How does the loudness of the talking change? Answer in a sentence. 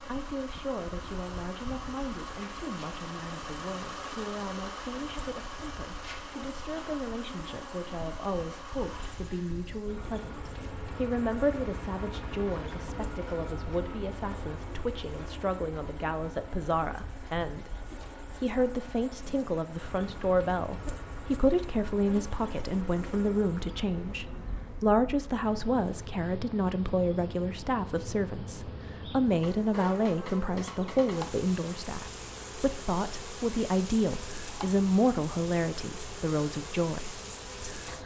The volume of the talking goes up.